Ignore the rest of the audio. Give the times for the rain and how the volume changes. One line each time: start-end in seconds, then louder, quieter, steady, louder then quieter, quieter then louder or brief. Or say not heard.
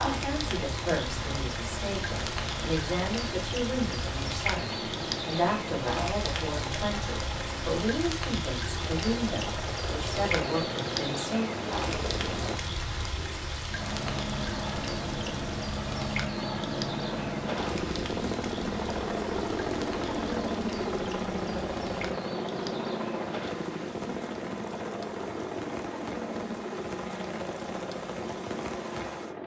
0.0-29.4 quieter.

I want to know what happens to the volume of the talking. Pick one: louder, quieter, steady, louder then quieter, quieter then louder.
steady.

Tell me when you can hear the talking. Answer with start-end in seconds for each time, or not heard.
0.0-11.4.